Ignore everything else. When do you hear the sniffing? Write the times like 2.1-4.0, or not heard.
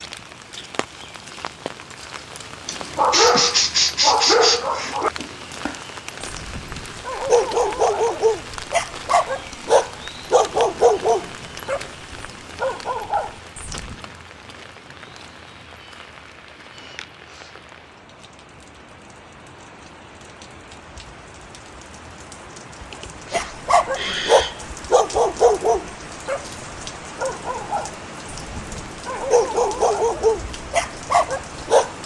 2.6-5.0, 16.8-17.5, 22.9-24.6.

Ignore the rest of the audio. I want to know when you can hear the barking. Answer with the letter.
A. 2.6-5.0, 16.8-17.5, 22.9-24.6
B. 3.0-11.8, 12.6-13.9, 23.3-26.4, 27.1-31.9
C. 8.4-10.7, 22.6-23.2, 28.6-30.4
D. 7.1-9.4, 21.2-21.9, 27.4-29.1
B.